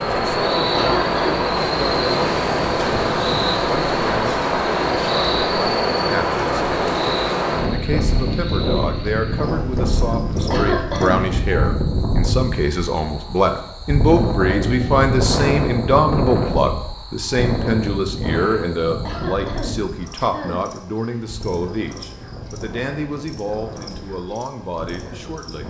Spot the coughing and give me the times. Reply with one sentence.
You can hear the coughing from 0.7 to 1.4 s, from 10.5 to 11.2 s and from 19.1 to 20.6 s.